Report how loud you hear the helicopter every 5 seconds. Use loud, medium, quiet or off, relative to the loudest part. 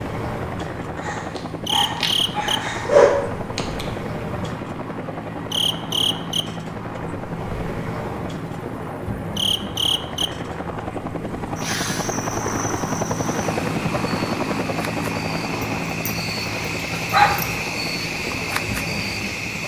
medium, medium, loud, loud.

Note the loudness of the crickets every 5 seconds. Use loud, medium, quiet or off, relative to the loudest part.
loud, loud, medium, loud.